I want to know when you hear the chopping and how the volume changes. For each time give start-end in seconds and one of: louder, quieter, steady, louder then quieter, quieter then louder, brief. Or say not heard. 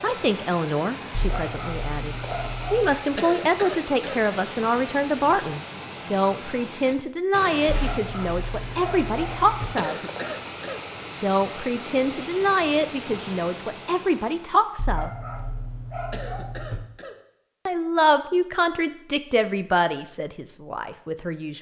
not heard.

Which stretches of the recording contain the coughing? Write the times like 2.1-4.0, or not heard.
3.1-4.2, 9.8-10.8, 16.1-17.2.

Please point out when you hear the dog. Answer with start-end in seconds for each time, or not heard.
1.1-3.0, 7.7-9.7, 14.8-16.8.